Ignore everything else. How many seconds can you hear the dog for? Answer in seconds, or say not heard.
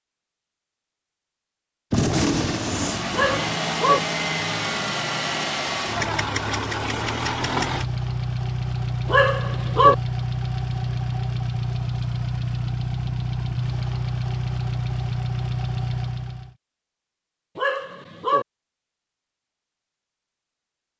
3 s.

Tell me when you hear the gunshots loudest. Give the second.
2 s.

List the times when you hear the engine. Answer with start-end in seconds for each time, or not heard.
2.5-16.6.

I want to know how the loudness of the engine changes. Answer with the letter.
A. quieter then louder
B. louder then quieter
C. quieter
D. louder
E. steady
E.